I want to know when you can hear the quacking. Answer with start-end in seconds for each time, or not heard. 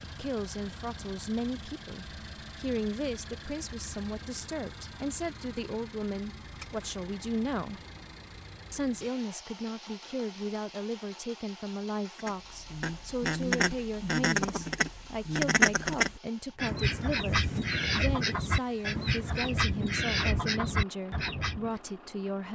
12.2-21.7.